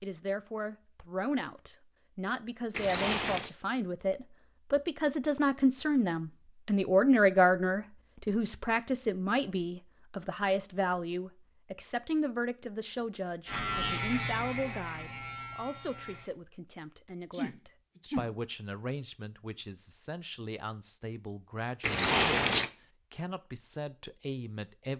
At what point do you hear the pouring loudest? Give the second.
22 s.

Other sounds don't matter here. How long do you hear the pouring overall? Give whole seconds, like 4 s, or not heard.
2 s.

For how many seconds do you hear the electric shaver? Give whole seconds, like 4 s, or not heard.
3 s.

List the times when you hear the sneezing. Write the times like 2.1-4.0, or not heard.
17.3-18.3.